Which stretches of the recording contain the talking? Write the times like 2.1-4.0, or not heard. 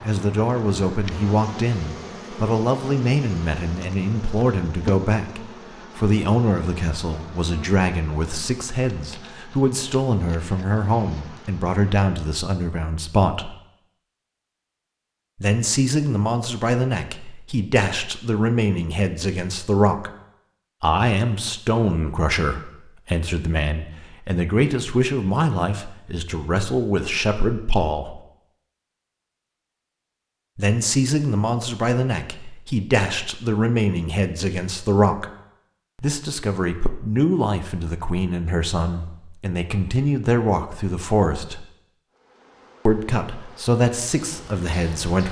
0.1-13.6, 15.4-20.1, 20.8-28.2, 30.6-35.2, 36.0-41.6, 42.9-45.2.